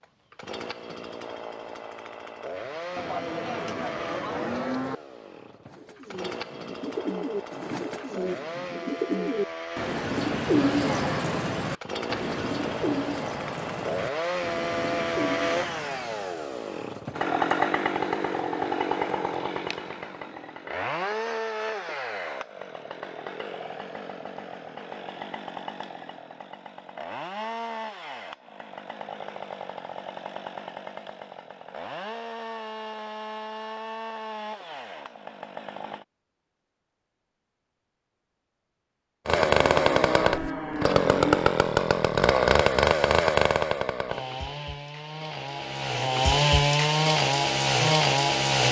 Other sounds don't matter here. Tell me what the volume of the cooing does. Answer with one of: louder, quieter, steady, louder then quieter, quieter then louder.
louder then quieter.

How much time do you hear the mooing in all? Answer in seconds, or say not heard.
4 s.